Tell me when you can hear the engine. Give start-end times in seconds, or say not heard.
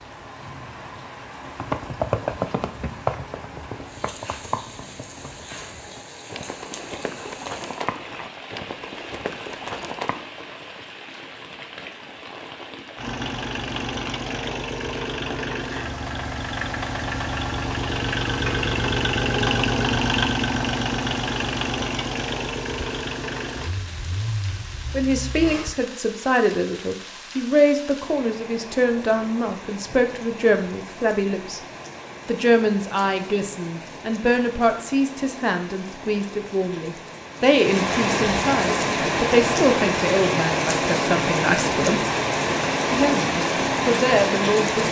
12.9-25.7.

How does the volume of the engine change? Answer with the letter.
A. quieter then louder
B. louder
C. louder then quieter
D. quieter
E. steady
C.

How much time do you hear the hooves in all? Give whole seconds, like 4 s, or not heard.
9 s.